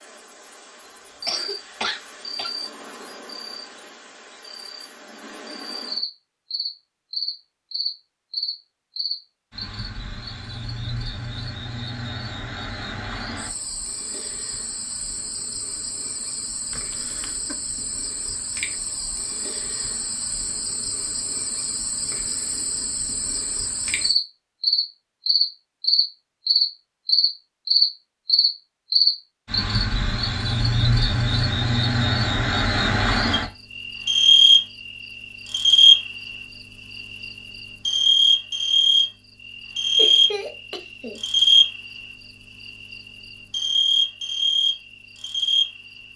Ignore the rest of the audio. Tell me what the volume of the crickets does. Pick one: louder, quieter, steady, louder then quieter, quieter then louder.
louder.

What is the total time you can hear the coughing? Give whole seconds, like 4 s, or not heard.
3 s.